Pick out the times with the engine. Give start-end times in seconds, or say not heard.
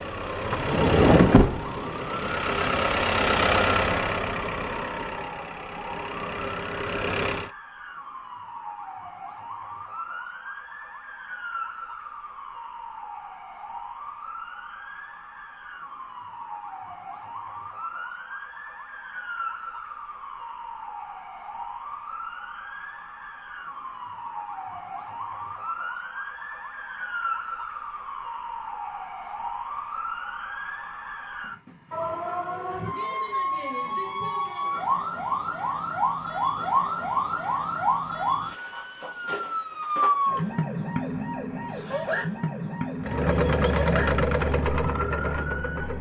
0.0-7.5, 43.0-45.9.